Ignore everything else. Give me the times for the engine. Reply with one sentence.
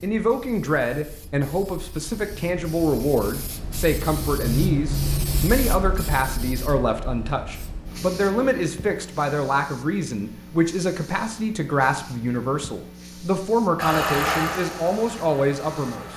The engine can be heard from 13.8 to 16.1 s.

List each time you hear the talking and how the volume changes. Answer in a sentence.
The talking can be heard from 0.0 to 16.1 s, at a steady volume.